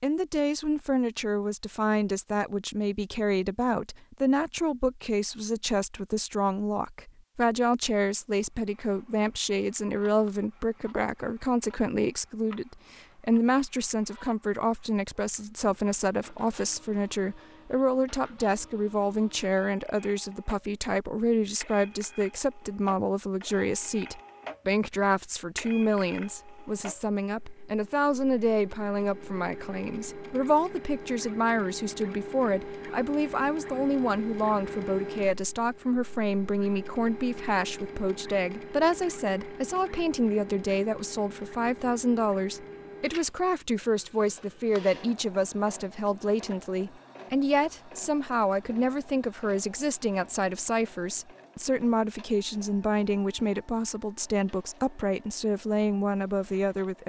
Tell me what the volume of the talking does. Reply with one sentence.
The loudness of the talking stays about the same.